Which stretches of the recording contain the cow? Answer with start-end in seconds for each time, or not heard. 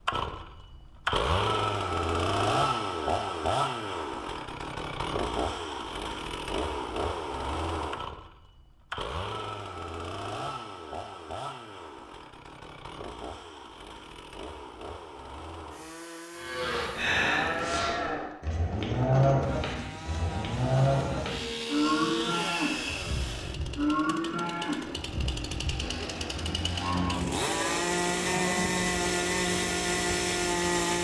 16.4-28.8.